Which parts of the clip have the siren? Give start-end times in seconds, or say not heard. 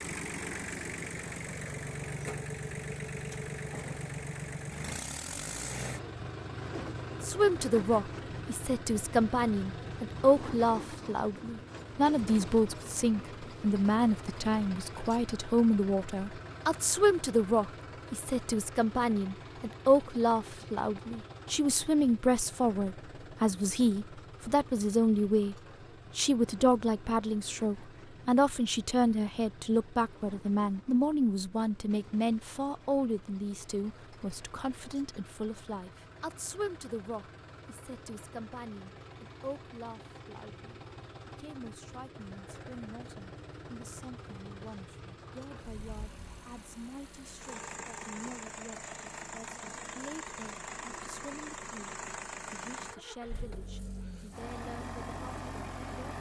not heard.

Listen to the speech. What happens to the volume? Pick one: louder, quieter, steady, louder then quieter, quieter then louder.
quieter.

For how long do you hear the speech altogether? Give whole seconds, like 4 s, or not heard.
48 s.